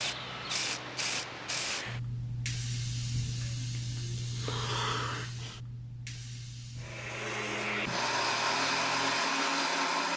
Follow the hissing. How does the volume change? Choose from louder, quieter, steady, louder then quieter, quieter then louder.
quieter.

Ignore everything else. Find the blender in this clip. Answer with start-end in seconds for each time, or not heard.
6.8-10.1.